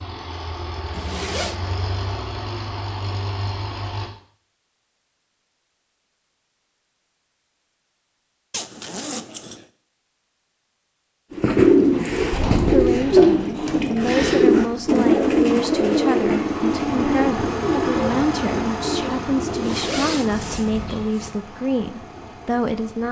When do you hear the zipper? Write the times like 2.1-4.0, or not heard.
0.9-1.6, 8.5-9.7, 19.4-21.4.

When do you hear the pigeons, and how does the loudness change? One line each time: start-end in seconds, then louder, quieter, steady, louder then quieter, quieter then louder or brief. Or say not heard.
11.3-21.1 quieter.